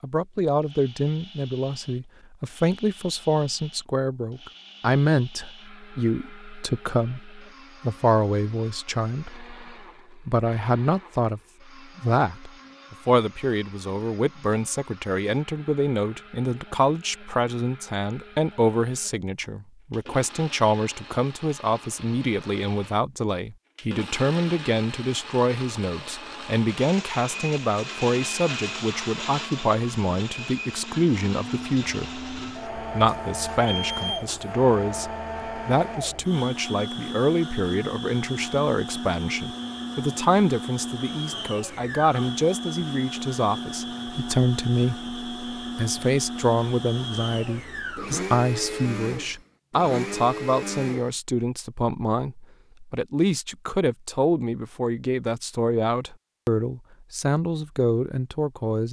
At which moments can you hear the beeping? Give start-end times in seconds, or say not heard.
33.0-34.5.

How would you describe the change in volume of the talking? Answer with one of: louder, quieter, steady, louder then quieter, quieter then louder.
steady.